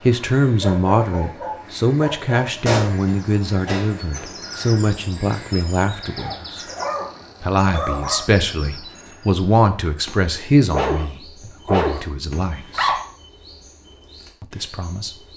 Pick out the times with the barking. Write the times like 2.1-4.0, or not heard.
0.6-2.6, 6.2-8.2, 10.7-13.0.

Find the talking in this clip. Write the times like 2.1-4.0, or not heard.
0.0-6.7, 7.4-12.9, 14.4-15.2.